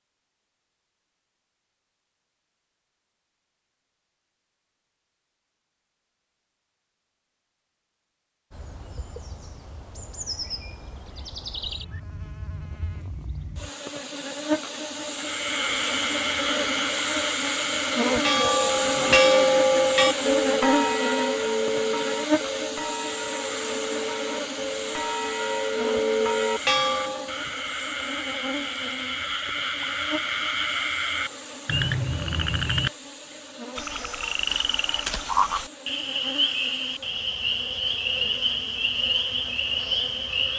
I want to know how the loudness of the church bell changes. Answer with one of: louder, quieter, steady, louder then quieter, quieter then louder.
quieter then louder.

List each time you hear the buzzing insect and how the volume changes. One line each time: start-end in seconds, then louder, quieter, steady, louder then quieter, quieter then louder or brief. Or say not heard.
8.5-40.5 louder then quieter.